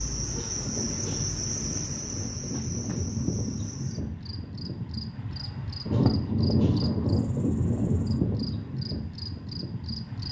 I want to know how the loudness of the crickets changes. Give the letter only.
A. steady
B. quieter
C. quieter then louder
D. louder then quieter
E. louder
B.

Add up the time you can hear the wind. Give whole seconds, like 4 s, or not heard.
10 s.